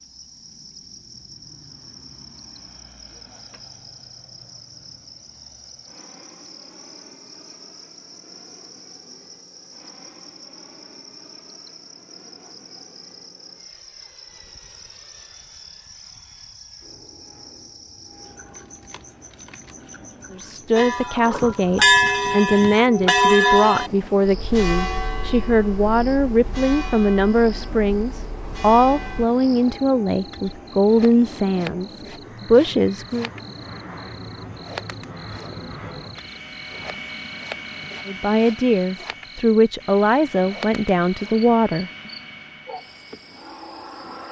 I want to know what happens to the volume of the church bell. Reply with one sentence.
The volume of the church bell goes down.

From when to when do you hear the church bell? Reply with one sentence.
The church bell can be heard from 20.8 to 29.2 s.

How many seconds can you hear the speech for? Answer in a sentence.
You can hear the speech for 17 seconds altogether.